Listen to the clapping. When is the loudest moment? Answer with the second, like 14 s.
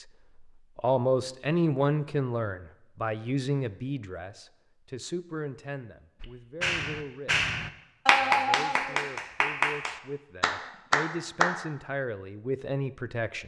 8 s.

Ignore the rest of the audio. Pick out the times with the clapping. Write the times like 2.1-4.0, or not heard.
6.2-11.7.